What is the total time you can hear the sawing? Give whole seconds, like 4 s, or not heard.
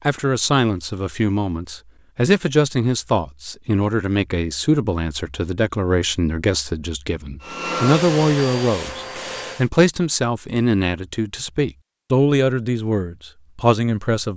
not heard.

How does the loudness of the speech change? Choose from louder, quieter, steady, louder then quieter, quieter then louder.
steady.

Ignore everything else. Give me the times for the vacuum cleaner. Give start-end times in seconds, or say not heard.
7.4-9.7.